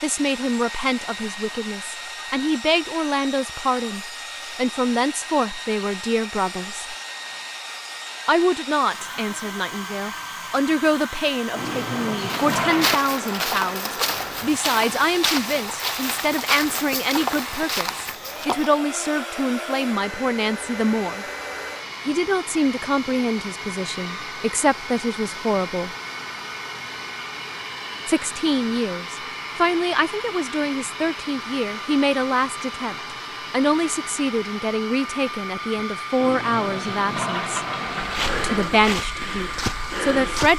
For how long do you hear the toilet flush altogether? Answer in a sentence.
The toilet flush can be heard for 4 seconds in total.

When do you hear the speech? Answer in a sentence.
The speech can be heard from 0.0 to 7.0 s, from 8.2 to 21.2 s, from 22.1 to 25.9 s, from 28.1 to 37.6 s and from 38.4 to 40.5 s.